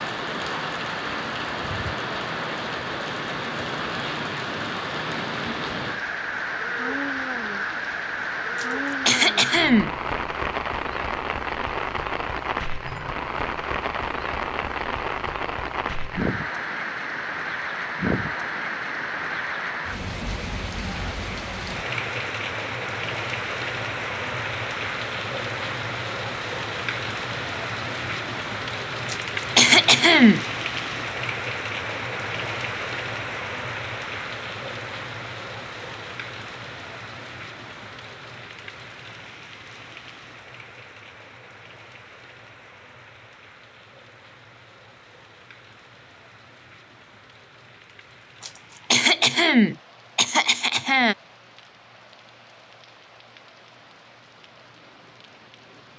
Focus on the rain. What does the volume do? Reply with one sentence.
The loudness of the rain goes down.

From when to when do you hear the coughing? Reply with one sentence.
You can hear the coughing from 8.6 to 9.9 s, from 29.1 to 30.4 s and from 48.4 to 51.1 s.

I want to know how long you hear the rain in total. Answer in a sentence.
You can hear the rain for 56 seconds altogether.